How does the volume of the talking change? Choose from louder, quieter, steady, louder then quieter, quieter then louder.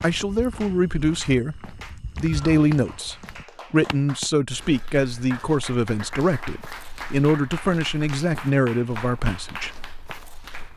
steady.